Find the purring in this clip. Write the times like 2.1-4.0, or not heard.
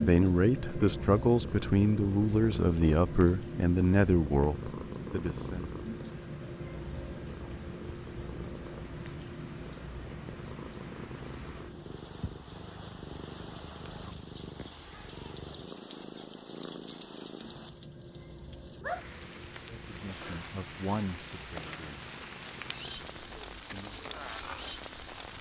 0.0-25.3.